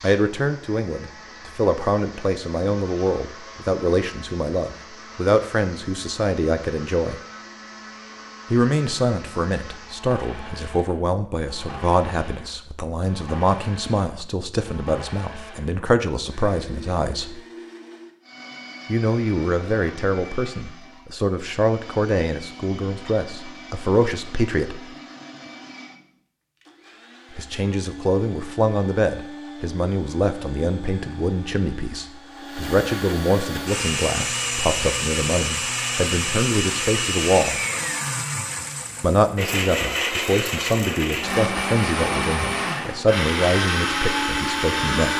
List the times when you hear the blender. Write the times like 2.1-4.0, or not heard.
0.0-45.1.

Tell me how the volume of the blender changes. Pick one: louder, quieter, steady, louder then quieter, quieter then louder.
louder.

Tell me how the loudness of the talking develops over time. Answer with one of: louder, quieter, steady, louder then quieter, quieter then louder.
steady.